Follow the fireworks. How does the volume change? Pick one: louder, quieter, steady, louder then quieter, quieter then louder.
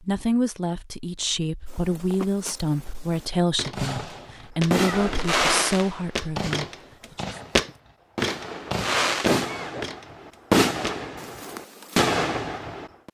quieter then louder.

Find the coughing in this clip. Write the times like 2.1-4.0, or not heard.
9.2-9.8.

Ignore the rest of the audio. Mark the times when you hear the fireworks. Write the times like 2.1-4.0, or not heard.
3.7-13.0.